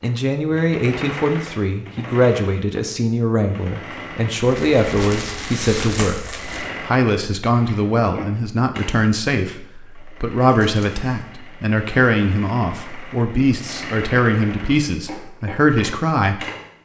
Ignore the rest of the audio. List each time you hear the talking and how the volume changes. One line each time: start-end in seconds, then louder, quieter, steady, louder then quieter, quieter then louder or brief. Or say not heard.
0.0-16.4 steady.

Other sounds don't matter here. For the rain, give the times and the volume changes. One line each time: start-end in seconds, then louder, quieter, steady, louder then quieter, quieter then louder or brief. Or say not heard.
not heard.